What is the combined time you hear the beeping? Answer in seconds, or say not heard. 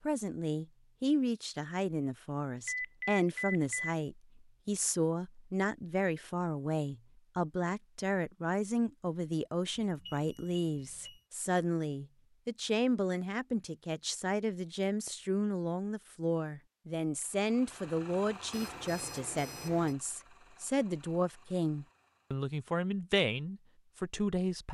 4 s.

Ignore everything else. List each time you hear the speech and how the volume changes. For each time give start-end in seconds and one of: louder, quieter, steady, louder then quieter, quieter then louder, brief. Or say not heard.
0.1-24.6 steady.